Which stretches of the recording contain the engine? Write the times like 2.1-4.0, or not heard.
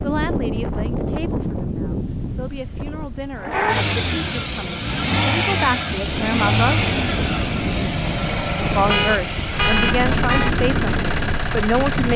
3.4-12.1.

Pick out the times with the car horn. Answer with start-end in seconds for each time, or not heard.
8.7-10.5.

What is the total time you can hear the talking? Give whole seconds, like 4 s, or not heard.
10 s.